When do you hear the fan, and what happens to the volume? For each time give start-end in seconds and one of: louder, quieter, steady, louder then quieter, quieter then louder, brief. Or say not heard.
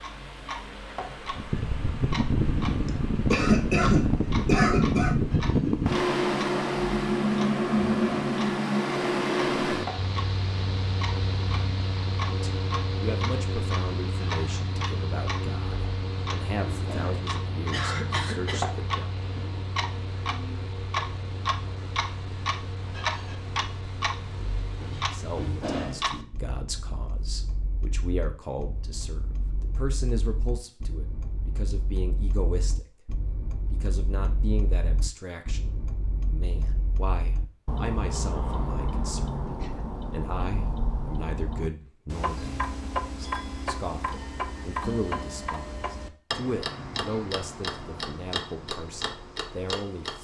0.0-25.6 quieter.